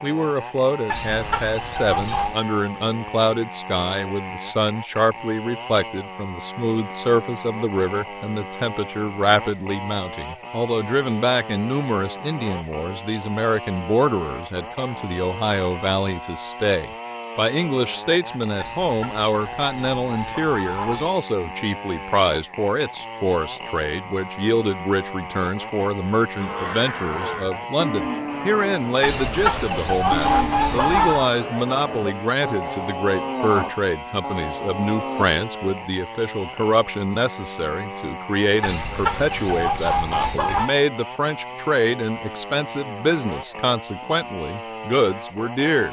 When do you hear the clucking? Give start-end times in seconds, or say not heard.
0.9-2.4, 18.6-21.1, 29.0-31.3, 38.6-40.8.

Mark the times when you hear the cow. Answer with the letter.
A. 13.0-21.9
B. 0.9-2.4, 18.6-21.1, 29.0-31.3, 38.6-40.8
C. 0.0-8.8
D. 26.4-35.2
D.